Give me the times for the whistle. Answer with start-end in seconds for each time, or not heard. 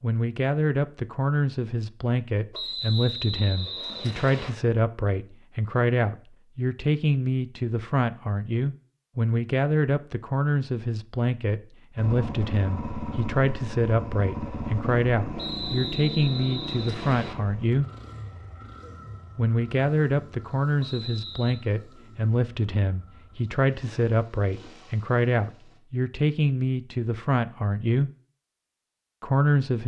2.5-4.5, 15.3-17.4, 20.8-21.6.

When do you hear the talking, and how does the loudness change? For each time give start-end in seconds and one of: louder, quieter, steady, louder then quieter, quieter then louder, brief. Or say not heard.
0.0-17.9 steady
19.4-28.1 steady
29.2-29.8 brief.